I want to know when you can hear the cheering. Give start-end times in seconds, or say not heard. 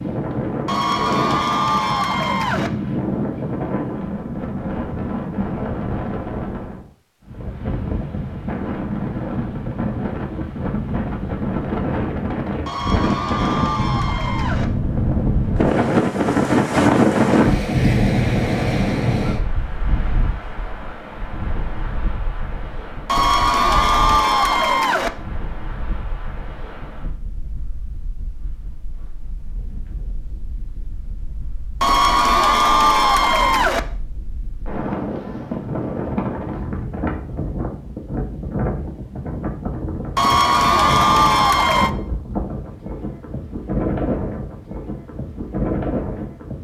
0.7-2.7, 12.7-14.7, 23.1-25.1, 31.8-33.8, 40.1-41.9.